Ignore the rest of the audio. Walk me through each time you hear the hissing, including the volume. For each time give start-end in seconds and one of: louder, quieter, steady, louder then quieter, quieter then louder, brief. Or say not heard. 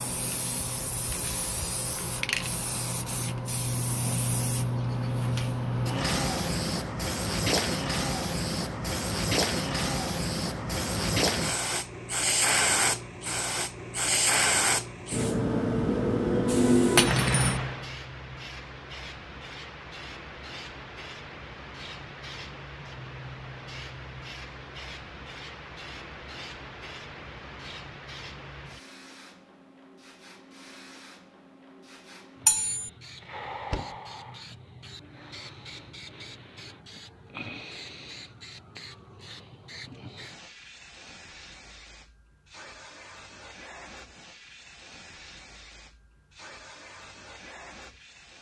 0.0-48.3 quieter.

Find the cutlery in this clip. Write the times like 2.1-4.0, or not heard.
16.9-17.6, 32.5-32.9.